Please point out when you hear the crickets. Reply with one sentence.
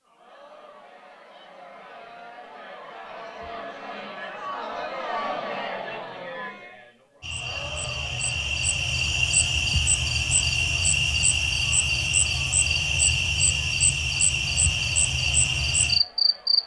You can hear the crickets from 7.2 to 16.6 s.